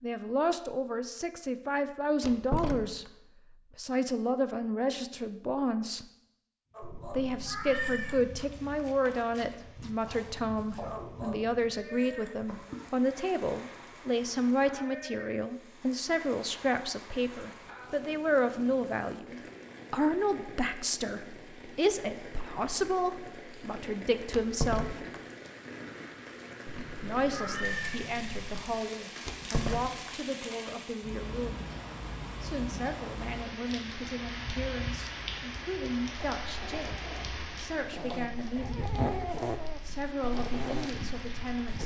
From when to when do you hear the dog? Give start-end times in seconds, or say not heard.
6.7-12.9, 36.4-41.8.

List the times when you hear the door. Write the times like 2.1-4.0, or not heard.
2.2-2.9, 24.3-25.1, 29.2-30.1.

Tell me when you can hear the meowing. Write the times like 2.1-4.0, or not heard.
6.8-8.3, 26.8-28.7.